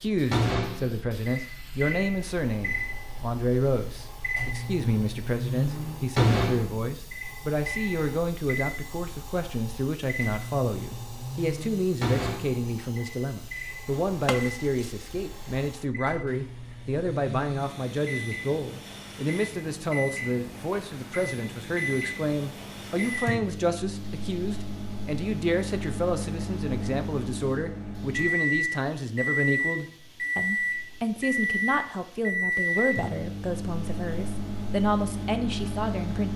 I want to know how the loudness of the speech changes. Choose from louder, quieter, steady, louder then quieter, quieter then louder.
steady.